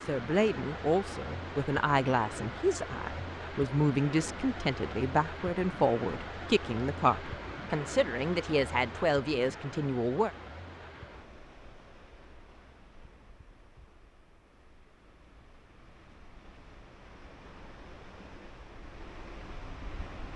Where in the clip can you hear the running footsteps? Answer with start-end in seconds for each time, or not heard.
not heard.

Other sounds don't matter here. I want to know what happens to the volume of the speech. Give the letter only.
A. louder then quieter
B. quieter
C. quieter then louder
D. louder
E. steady
E.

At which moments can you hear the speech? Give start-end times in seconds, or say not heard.
0.0-10.3.